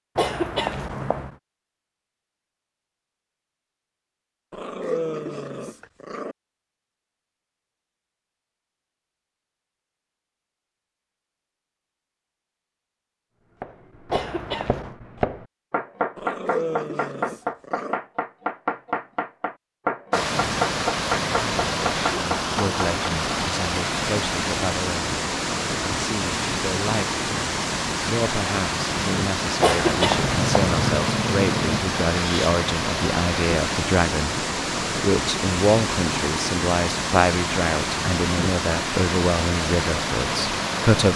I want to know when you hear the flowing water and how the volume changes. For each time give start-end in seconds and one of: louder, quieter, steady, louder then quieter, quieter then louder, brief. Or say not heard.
20.1-41.1 steady.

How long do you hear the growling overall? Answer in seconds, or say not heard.
6 s.